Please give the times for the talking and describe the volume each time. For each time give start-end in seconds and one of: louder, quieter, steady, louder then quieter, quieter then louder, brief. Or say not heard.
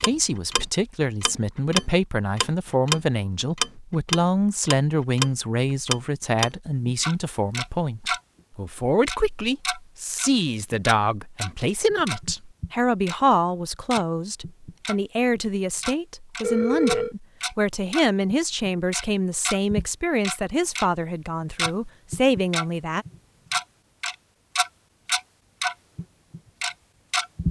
0.0-23.1 steady.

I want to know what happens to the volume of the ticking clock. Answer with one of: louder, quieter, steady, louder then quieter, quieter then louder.
quieter then louder.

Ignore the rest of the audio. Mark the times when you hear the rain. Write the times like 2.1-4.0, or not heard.
not heard.